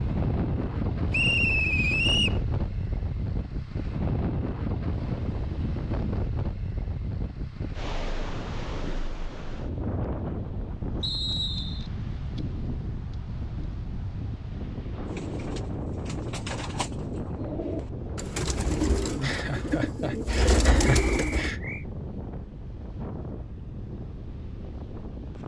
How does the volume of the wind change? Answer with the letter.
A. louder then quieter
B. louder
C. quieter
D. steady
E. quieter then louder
C.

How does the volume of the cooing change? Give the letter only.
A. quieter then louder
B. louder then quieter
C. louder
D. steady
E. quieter
C.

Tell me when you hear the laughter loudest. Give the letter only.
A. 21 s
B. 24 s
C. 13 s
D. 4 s
A.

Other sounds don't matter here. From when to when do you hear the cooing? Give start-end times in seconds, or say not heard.
15.1-21.6.